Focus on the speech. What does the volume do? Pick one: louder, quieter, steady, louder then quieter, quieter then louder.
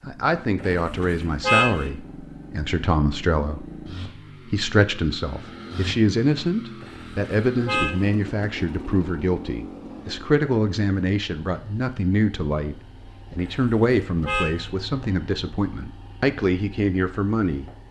steady.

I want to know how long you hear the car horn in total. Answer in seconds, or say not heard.
4 s.